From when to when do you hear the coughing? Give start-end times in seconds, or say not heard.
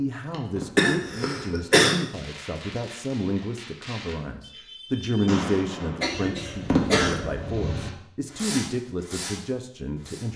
0.3-1.9, 6.0-7.2.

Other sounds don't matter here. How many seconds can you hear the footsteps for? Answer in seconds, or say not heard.
not heard.